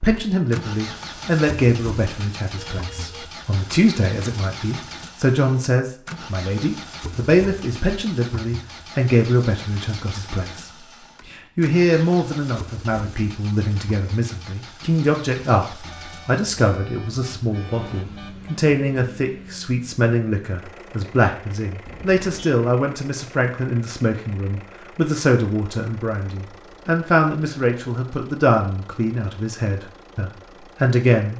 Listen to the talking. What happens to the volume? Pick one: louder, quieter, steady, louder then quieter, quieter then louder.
steady.